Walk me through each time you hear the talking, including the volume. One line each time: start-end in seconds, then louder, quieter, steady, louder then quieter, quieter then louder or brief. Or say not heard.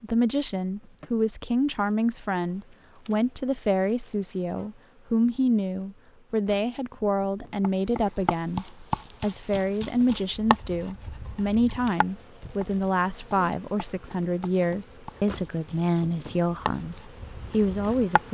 0.0-18.2 steady.